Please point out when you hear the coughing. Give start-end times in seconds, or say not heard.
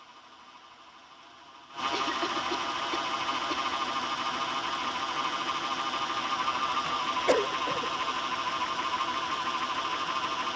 1.9-3.6, 7.2-7.9.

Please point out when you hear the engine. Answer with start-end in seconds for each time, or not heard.
0.0-10.5.